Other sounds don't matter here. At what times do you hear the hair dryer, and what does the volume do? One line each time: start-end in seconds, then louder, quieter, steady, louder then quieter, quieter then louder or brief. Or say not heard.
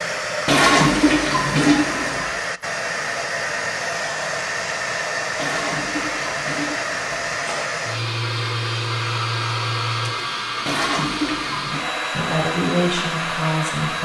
0.0-14.0 steady.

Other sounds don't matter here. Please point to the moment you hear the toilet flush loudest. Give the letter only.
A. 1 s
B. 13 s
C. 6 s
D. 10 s
A.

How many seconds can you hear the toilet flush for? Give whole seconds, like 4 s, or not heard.
5 s.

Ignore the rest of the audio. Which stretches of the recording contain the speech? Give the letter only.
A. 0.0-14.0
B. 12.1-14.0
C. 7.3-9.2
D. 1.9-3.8
B.